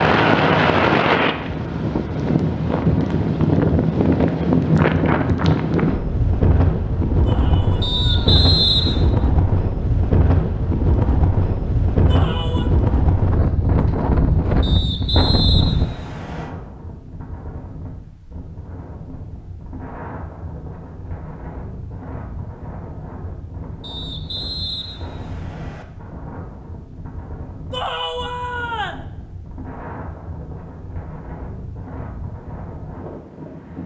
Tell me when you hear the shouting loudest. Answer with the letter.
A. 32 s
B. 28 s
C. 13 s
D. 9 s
B.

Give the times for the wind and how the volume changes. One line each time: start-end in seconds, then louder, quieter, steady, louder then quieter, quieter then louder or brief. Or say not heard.
0.0-33.8 quieter.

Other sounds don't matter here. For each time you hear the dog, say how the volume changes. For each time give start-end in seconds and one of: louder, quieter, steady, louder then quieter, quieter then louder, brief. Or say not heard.
not heard.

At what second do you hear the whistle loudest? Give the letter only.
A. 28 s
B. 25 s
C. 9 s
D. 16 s
C.